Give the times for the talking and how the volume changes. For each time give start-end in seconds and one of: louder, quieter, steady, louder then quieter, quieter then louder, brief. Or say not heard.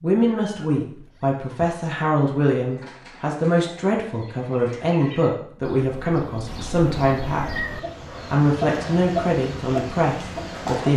0.0-7.5 steady
8.3-10.9 brief.